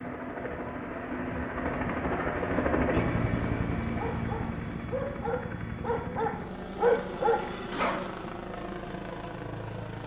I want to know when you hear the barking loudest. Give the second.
7 s.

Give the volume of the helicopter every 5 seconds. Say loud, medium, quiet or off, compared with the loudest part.
loud, medium.